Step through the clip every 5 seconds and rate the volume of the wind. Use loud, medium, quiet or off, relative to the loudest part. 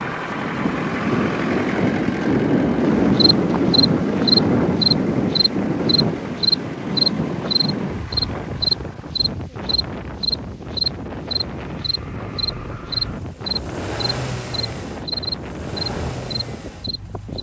loud, medium, quiet, quiet.